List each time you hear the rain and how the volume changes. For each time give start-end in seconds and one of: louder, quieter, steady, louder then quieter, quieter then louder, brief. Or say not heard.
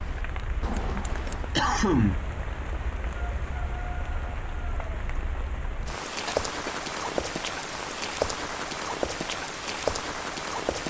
0.0-10.8 louder.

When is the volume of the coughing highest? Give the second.
2 s.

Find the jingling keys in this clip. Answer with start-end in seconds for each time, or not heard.
0.6-1.6.